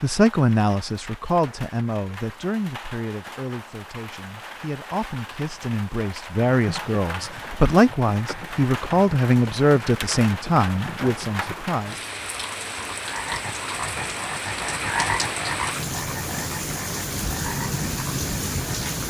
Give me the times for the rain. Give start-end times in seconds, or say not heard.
0.0-19.0.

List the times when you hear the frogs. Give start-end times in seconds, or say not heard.
6.5-19.0.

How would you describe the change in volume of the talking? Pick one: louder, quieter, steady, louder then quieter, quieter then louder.
quieter then louder.